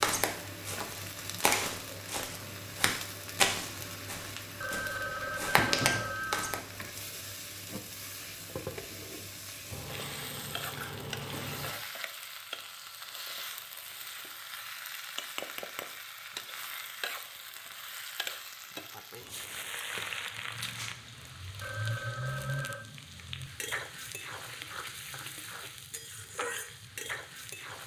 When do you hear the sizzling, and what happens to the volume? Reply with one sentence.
You can hear the sizzling from 0.0 to 27.8 s, at a steady volume.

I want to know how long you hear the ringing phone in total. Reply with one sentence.
The ringing phone can be heard for 3 seconds in total.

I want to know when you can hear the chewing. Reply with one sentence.
You can hear the chewing from 9.7 to 11.7 s and from 19.2 to 21.1 s.